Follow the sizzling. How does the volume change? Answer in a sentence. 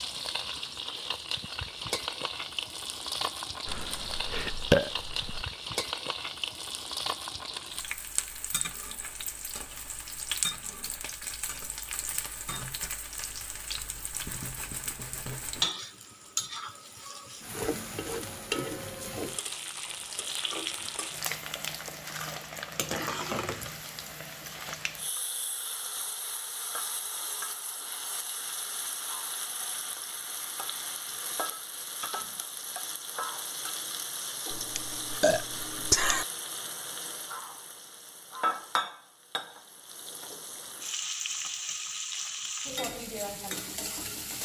The loudness of the sizzling stays about the same.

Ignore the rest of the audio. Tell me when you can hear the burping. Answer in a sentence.
The burping can be heard from 3.6 to 5.5 s and from 34.5 to 36.2 s.